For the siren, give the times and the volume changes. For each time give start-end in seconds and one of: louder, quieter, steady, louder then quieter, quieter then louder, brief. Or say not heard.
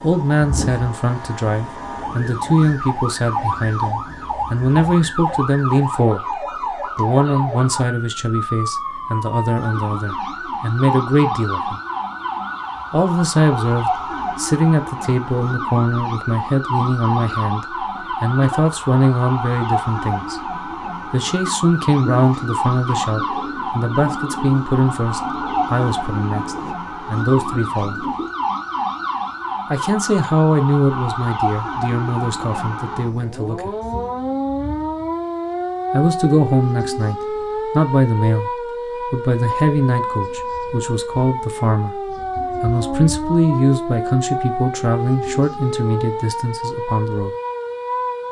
0.0-48.2 steady.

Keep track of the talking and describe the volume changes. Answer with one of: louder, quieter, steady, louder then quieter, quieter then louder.
steady.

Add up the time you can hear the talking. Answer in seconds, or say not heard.
42 s.